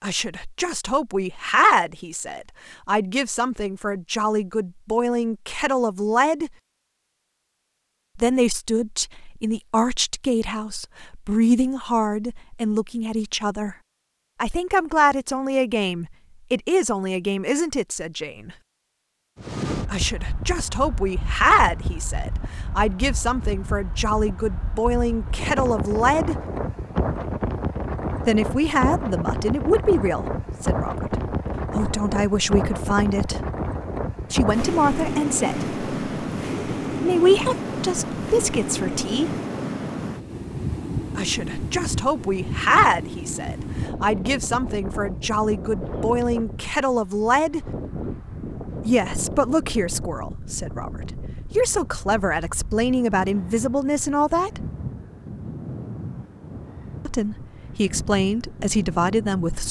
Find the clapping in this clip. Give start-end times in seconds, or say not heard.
not heard.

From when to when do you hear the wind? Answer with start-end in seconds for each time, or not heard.
19.4-59.6.